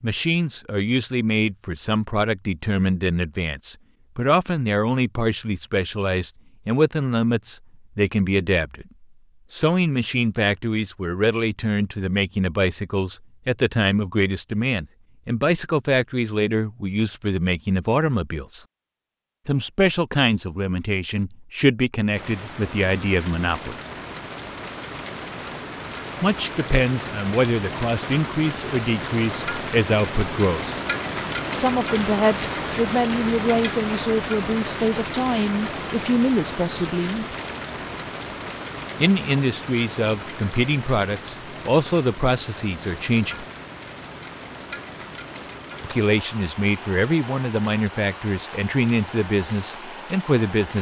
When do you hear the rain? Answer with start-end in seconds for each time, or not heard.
22.1-50.7.